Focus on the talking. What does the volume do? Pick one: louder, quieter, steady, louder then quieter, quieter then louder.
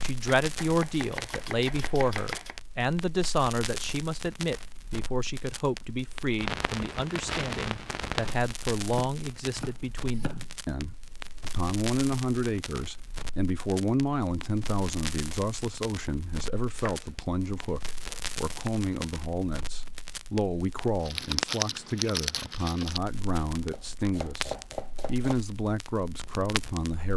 steady.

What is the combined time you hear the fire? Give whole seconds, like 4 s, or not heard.
27 s.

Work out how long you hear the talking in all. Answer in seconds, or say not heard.
27 s.